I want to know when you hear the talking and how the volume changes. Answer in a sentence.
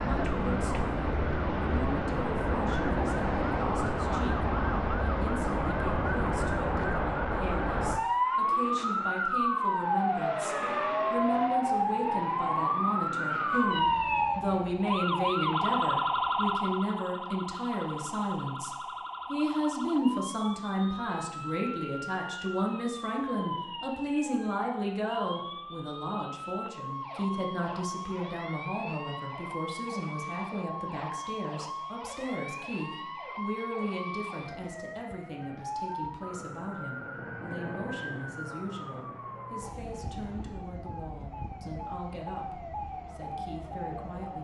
You can hear the talking from 0.0 to 44.4 s, getting louder then quieter.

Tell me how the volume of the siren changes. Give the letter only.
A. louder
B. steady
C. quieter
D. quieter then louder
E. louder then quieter
C.